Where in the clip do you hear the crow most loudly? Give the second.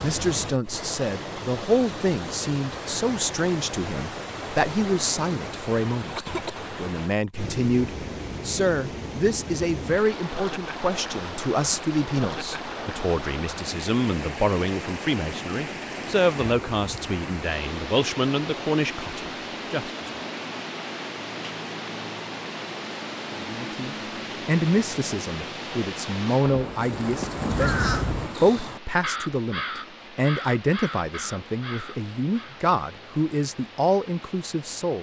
28 s.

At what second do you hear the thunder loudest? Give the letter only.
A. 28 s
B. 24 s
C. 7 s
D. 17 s
A.